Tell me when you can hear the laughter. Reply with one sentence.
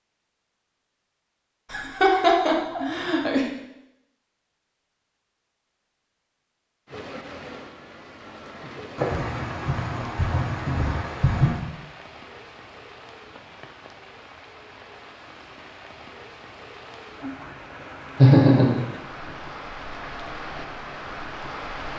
You can hear the laughter from 1.7 to 3.5 s, from 8.9 to 11.6 s and from 18.1 to 19.3 s.